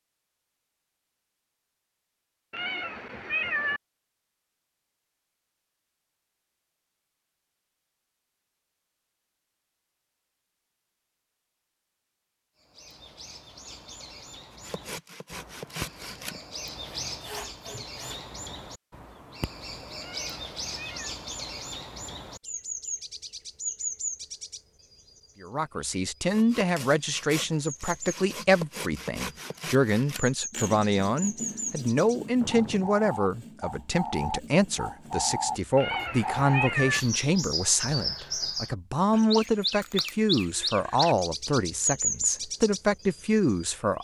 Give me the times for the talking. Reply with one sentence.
The talking can be heard from 25.4 to 43.9 s.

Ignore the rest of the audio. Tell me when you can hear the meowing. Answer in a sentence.
You can hear the meowing from 2.5 to 3.8 s, from 20.0 to 21.1 s and from 35.8 to 37.0 s.